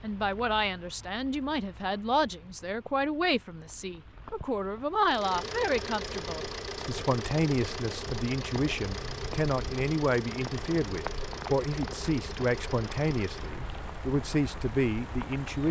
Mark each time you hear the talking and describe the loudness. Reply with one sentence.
The talking can be heard from 0.0 to 15.6 s, at a steady volume.